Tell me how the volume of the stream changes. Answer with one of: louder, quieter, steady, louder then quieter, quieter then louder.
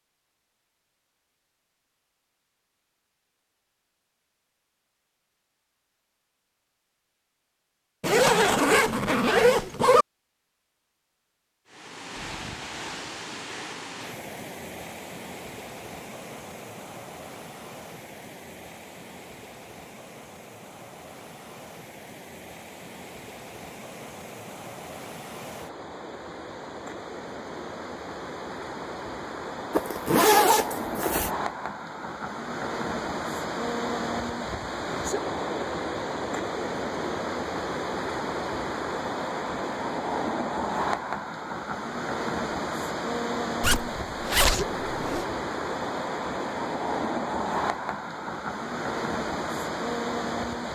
louder.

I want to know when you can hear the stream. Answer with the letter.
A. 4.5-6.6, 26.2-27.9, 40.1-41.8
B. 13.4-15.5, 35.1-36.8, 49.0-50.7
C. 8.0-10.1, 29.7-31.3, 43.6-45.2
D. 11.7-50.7
D.